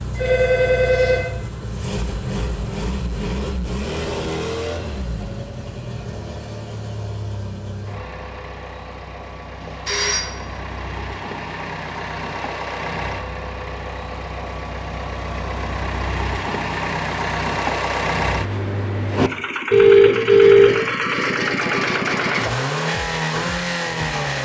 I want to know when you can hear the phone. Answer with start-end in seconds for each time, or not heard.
0.1-1.2, 9.6-10.3, 19.7-20.8.